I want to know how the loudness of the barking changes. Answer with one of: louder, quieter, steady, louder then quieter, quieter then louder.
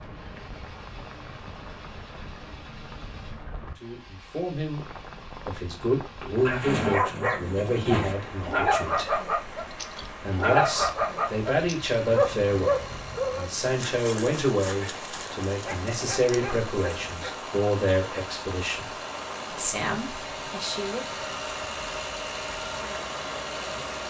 quieter.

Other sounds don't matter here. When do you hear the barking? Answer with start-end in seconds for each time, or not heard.
6.3-17.4.